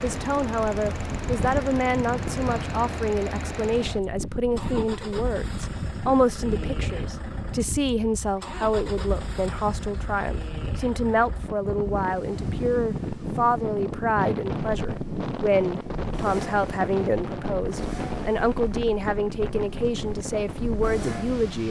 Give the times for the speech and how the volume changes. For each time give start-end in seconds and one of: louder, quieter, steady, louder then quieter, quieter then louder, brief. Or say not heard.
0.0-21.6 steady.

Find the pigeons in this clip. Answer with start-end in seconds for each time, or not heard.
not heard.